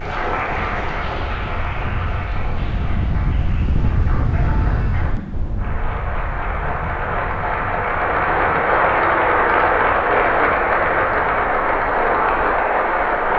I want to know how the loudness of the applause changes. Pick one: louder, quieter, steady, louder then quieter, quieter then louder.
quieter then louder.